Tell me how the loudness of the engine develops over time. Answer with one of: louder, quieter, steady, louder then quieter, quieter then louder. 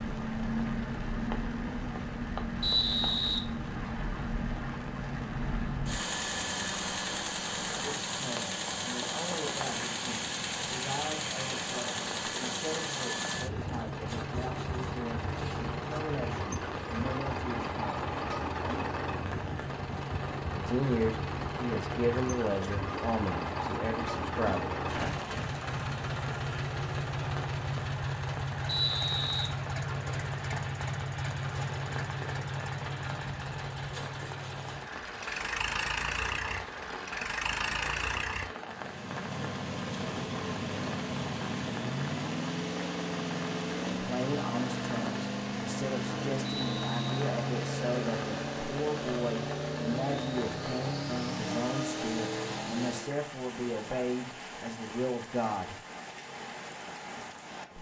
steady.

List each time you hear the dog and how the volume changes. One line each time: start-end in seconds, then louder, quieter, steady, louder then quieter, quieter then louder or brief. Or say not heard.
not heard.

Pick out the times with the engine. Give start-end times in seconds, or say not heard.
0.0-53.1.